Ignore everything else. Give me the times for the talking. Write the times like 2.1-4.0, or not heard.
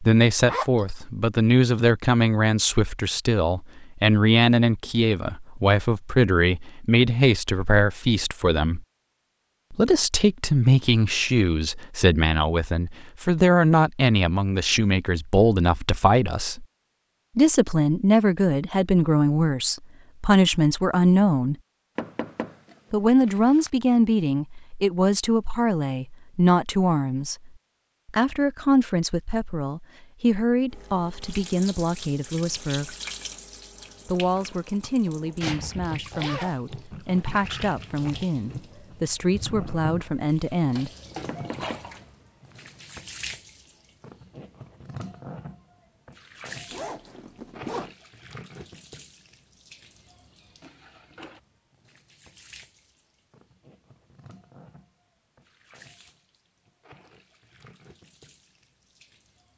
0.0-8.8, 9.7-16.6, 17.4-21.6, 22.9-33.0, 34.0-40.9.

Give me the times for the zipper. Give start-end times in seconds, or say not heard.
0.5-1.0, 36.1-36.6, 46.7-47.9.